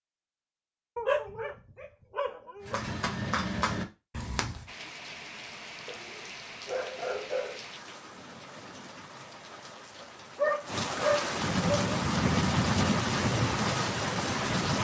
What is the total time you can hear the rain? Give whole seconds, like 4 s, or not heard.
10 s.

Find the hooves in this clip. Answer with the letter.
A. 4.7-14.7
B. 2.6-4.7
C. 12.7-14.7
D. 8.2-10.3
B.